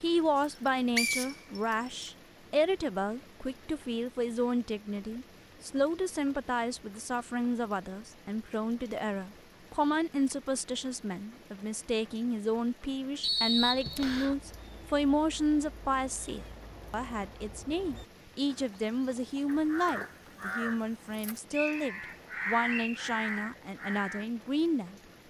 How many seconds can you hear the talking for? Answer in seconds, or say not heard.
25 s.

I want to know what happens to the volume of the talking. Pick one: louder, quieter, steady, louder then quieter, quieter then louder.
steady.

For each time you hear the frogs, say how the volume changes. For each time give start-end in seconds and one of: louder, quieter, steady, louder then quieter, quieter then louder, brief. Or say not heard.
not heard.